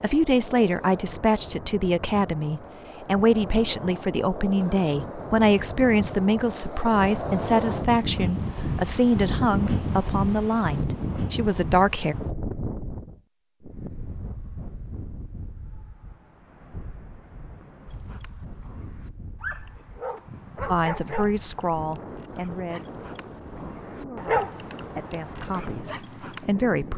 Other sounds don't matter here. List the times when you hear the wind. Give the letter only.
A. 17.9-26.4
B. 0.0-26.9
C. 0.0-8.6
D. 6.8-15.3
B.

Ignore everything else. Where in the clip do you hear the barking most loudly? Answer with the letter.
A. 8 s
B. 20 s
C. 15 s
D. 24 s
D.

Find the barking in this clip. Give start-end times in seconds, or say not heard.
17.9-26.4.